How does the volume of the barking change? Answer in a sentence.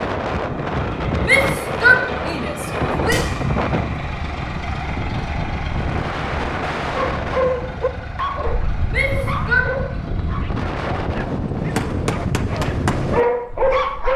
The loudness of the barking goes down, then up.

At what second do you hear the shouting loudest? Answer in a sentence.
The volume of the shouting peaks at 2 seconds.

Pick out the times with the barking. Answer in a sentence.
The barking can be heard from 7.0 to 14.1 s.